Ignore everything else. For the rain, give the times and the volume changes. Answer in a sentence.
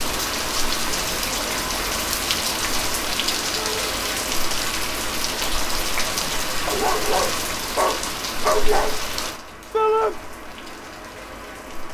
You can hear the rain from 0.0 to 11.8 s, getting quieter.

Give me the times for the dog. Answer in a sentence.
You can hear the dog from 6.7 to 9.0 s.